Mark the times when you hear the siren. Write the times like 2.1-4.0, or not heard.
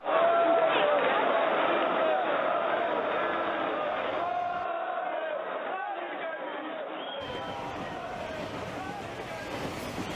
not heard.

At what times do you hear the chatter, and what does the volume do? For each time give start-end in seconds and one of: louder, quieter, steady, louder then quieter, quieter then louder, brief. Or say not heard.
0.0-10.1 quieter.